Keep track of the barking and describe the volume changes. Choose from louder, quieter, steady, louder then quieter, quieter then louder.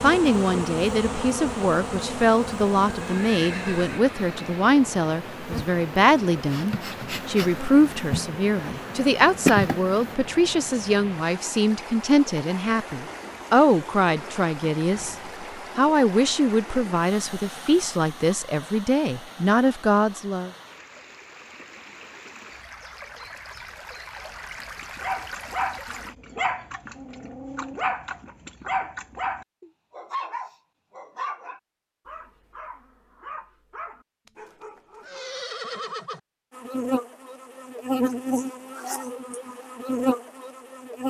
quieter.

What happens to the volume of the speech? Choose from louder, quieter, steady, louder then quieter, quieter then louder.
steady.